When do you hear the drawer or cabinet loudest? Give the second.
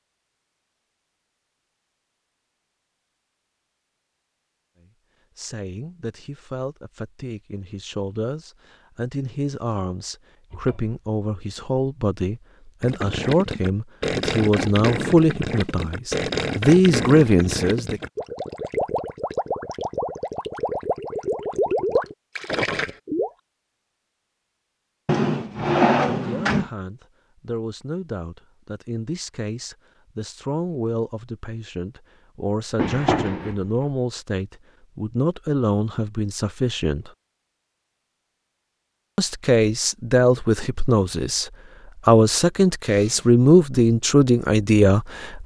26 s.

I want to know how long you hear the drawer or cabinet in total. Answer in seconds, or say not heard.
3 s.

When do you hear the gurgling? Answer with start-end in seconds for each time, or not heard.
12.8-23.3.